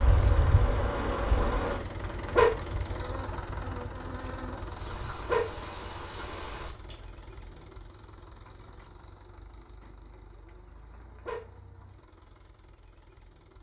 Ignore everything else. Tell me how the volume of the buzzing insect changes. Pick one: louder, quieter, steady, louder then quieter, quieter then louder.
quieter.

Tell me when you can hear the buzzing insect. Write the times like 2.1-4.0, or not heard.
0.0-7.7.